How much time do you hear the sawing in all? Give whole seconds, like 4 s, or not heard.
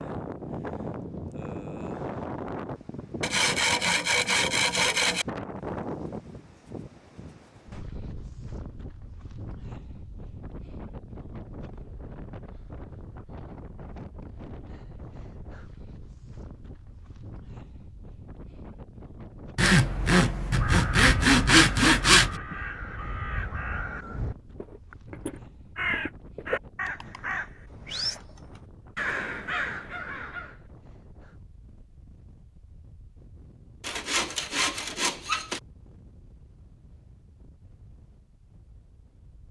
7 s.